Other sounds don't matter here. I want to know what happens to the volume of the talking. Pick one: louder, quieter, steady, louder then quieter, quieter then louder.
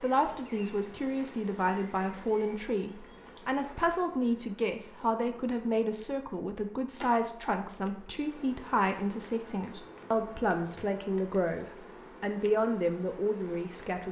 steady.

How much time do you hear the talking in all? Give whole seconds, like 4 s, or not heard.
14 s.